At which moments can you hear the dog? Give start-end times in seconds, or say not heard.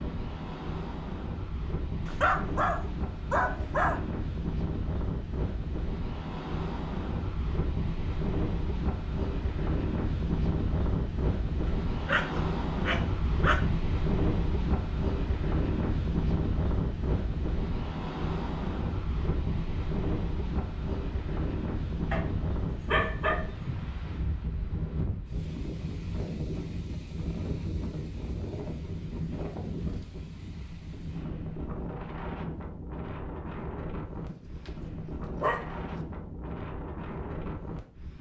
2.0-4.0, 11.7-13.7, 22.1-24.0, 34.2-35.6.